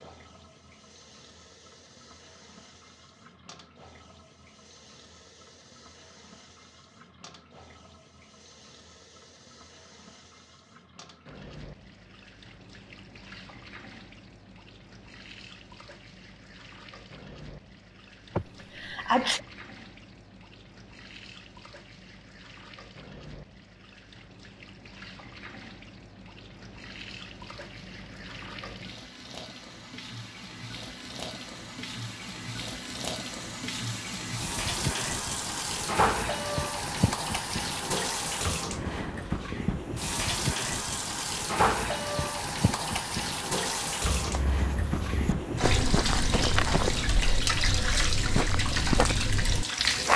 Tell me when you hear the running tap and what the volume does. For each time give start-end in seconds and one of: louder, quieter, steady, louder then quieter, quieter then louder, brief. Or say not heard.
0.0-50.1 louder.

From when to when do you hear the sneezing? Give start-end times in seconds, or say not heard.
18.4-19.4.